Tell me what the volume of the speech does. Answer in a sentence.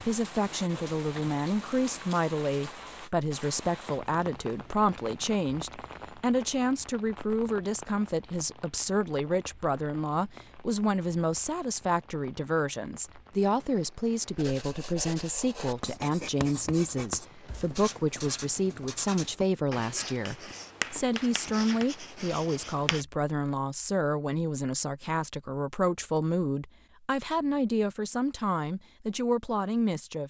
The volume of the speech stays about the same.